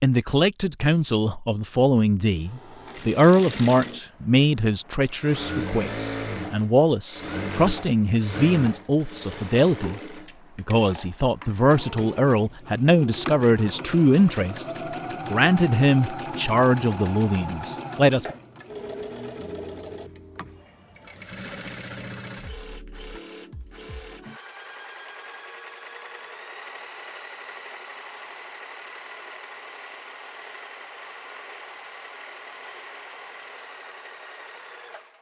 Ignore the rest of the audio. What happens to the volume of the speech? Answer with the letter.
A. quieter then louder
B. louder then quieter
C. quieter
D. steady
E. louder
D.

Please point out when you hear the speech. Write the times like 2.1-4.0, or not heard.
0.0-14.7, 15.2-18.4.